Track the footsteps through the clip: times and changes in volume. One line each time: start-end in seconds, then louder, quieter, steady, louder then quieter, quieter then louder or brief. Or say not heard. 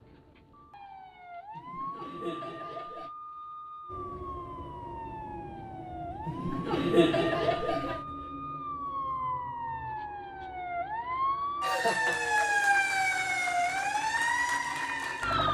not heard.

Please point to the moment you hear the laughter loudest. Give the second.
7 s.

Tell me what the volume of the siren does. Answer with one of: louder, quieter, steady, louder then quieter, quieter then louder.
louder.